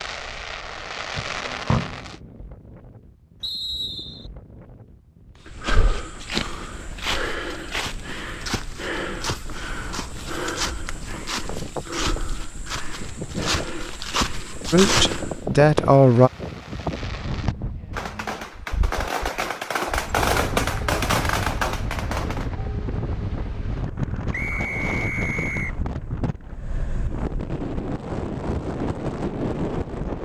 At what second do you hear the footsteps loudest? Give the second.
15 s.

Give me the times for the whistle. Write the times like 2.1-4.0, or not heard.
3.4-4.3, 24.3-25.8.